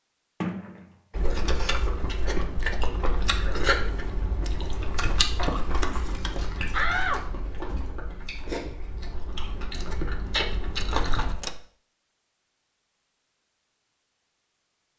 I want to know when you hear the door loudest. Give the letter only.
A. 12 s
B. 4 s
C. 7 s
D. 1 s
C.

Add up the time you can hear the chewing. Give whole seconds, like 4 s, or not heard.
10 s.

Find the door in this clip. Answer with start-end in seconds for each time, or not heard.
0.4-0.9, 6.7-8.0, 10.8-11.6.